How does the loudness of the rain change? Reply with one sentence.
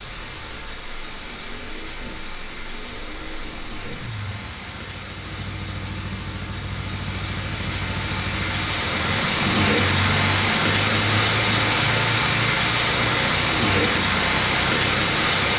The volume of the rain goes up.